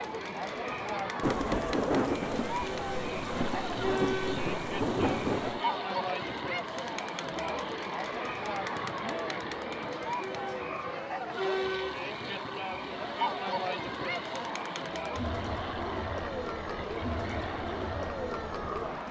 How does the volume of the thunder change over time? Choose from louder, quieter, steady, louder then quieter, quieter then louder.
quieter then louder.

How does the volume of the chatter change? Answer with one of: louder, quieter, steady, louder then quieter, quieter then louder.
steady.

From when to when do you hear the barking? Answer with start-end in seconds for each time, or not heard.
not heard.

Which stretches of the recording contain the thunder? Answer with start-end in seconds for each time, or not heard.
1.2-5.6.